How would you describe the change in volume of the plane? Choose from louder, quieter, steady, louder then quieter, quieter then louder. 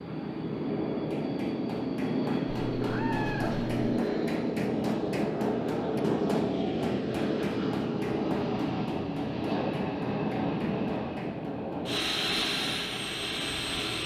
steady.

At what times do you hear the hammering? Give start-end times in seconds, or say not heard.
0.9-12.8.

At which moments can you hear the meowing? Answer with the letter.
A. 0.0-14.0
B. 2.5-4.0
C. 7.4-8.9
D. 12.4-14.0
B.